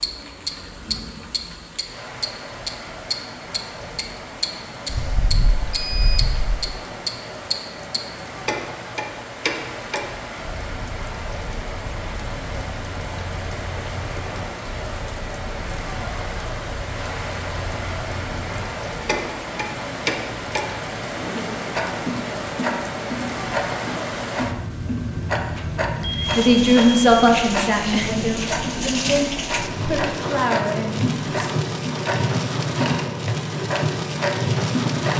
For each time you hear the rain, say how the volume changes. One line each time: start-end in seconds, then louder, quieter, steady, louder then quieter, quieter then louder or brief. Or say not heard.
0.0-35.1 louder.